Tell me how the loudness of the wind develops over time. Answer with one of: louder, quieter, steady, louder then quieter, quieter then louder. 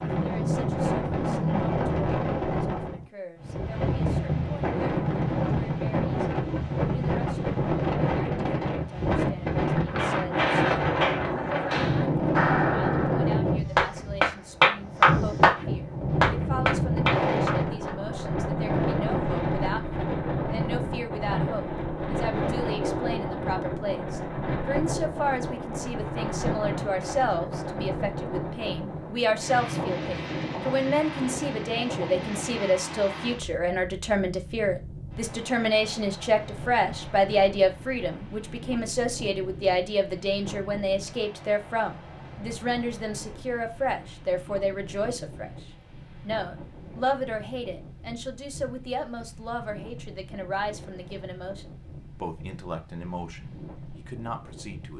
quieter.